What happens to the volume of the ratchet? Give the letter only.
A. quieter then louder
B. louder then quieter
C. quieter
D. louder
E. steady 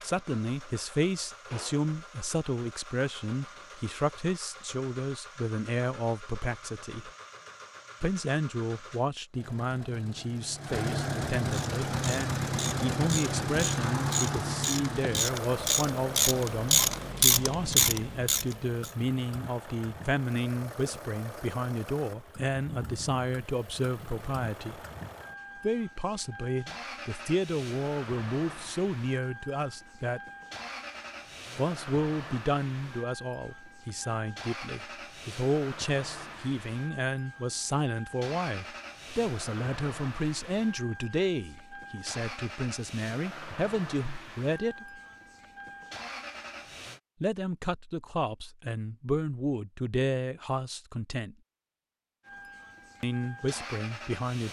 D.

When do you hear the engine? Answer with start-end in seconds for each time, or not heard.
0.0-47.0, 52.2-54.4.